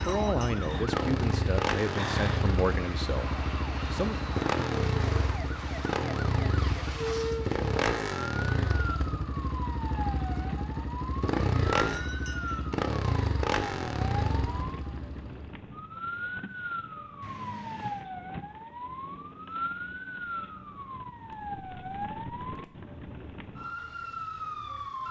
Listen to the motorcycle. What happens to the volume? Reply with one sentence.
The loudness of the motorcycle stays about the same.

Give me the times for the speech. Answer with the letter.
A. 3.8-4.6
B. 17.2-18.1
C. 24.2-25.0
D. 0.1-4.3
D.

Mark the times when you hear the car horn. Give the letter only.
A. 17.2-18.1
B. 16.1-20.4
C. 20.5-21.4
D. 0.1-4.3
A.